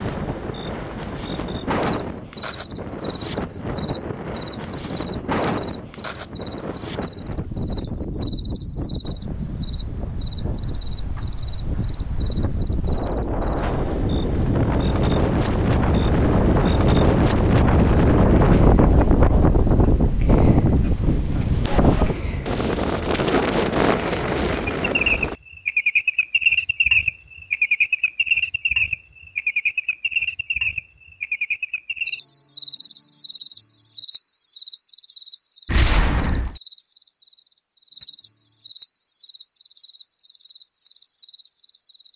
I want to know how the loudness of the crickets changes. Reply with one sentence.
The loudness of the crickets goes up, then down.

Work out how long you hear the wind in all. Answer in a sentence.
The wind can be heard for 25 seconds in total.